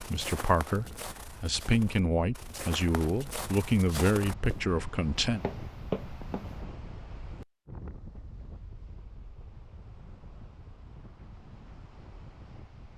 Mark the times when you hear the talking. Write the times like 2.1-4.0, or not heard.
0.0-5.4.